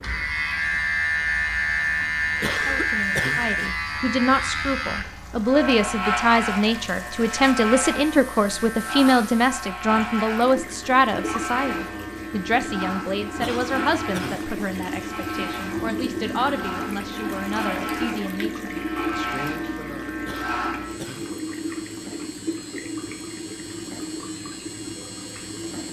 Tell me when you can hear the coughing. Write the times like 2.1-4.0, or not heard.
2.4-3.5, 13.4-14.5, 20.2-21.4.